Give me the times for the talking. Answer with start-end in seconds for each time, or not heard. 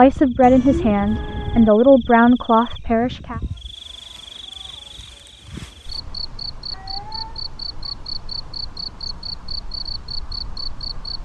0.0-3.4.